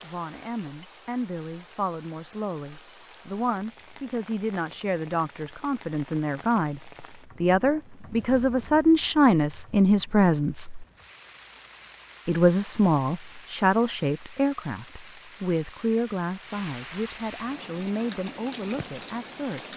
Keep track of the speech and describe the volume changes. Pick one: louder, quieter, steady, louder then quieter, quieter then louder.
louder then quieter.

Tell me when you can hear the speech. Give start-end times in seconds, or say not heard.
0.0-10.8, 12.2-19.7.